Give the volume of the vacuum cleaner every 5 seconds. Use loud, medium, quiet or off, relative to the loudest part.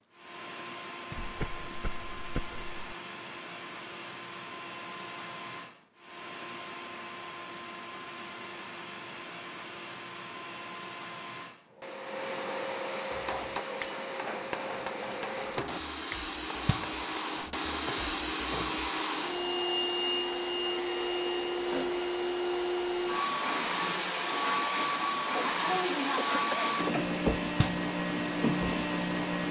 quiet, quiet, medium, loud, loud, loud.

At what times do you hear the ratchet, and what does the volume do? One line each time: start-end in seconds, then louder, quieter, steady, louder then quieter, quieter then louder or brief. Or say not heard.
not heard.